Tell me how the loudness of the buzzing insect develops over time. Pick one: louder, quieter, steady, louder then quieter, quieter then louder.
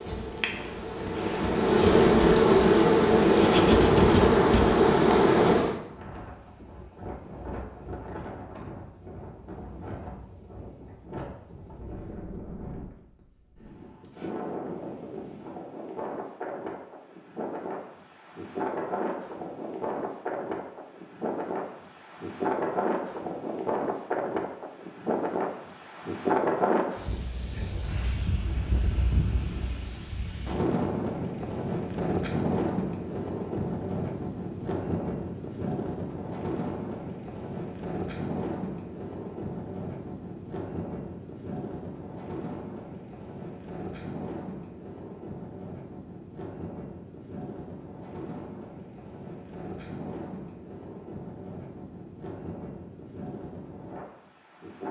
louder.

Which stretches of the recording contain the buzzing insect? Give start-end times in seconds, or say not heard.
0.0-5.8.